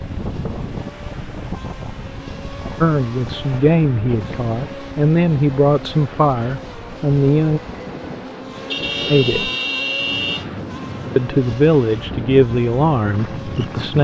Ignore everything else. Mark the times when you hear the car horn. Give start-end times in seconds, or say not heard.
8.7-10.5.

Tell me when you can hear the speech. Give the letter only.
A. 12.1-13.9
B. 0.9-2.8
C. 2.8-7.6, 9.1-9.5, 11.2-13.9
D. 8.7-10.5
C.